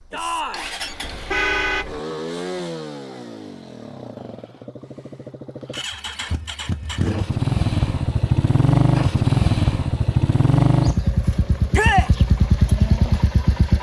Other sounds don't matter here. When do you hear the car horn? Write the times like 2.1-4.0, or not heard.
0.8-1.9.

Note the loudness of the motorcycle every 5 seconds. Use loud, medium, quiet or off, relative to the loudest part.
quiet, loud, loud.